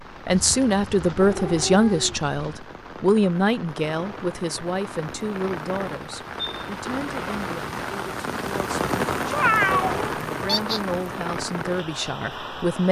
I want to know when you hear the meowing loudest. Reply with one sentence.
The loudest moment of the meowing is at 10 seconds.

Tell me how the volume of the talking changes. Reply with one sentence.
The volume of the talking goes down, then up.